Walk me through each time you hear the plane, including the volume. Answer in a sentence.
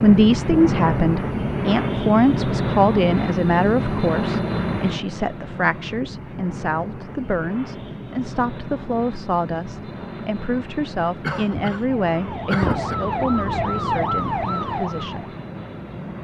You can hear the plane from 0.0 to 16.1 s, getting quieter.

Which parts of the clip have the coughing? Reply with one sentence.
You can hear the coughing from 11.2 to 12.9 s.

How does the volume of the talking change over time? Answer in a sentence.
The loudness of the talking goes down.